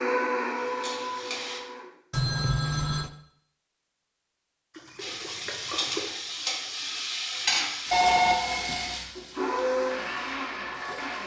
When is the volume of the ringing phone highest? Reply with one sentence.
The volume of the ringing phone peaks at 8 seconds.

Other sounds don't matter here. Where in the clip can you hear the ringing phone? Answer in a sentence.
You can hear the ringing phone from 2.1 to 3.1 s and from 7.9 to 8.9 s.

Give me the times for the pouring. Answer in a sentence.
The pouring can be heard from 4.7 to 6.2 s.